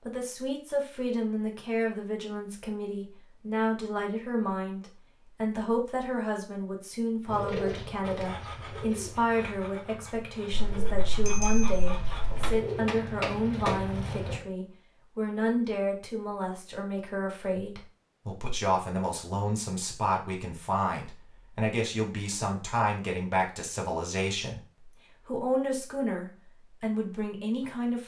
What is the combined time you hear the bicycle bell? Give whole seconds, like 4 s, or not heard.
2 s.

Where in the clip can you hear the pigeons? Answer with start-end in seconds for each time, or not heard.
7.2-14.4.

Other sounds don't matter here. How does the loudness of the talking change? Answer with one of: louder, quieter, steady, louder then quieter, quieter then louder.
steady.